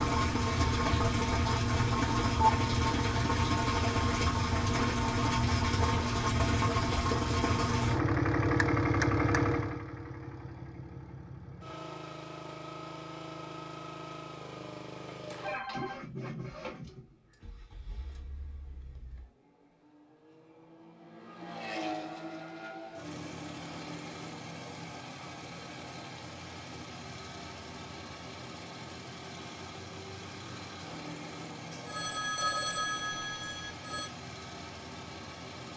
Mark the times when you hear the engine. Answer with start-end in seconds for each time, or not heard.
0.0-35.7.